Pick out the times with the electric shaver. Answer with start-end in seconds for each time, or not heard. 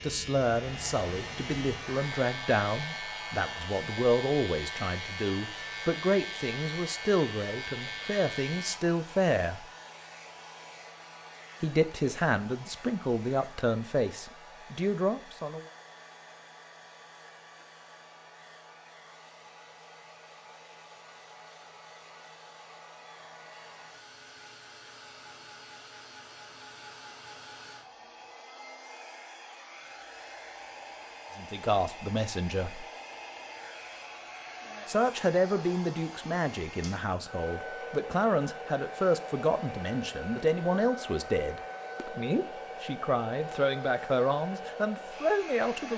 0.0-8.8.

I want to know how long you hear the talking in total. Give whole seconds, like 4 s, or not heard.
26 s.